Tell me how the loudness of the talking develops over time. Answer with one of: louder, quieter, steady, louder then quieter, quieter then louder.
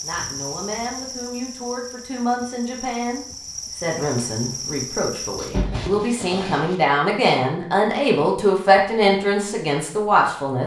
louder.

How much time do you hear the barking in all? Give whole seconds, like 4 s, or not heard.
2 s.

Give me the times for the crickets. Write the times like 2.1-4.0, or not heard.
0.0-5.7.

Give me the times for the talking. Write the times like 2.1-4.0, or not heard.
0.0-10.6.